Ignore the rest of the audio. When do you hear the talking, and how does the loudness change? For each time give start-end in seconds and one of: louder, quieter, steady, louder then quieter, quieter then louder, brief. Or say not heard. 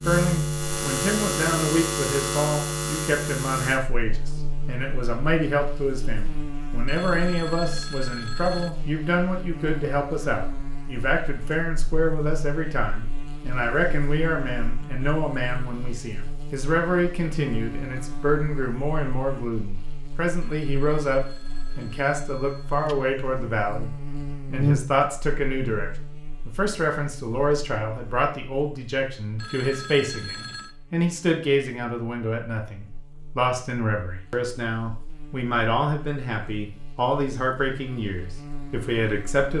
0.1-23.9 steady
24.5-39.5 steady.